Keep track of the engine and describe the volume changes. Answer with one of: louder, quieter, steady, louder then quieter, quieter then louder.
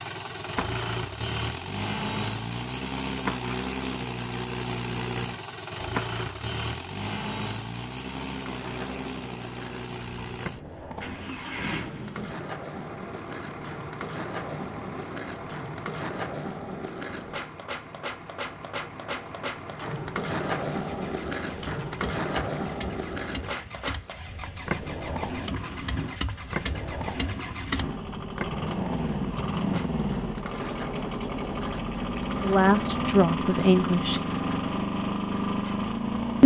quieter then louder.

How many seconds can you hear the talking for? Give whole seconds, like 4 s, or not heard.
2 s.